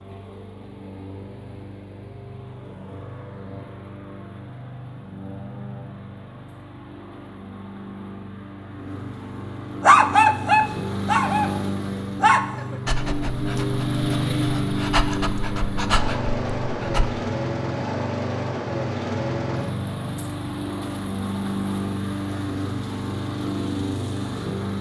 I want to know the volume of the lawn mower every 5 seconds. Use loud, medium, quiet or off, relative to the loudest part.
quiet, medium, loud, loud, loud.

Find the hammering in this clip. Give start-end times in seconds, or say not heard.
not heard.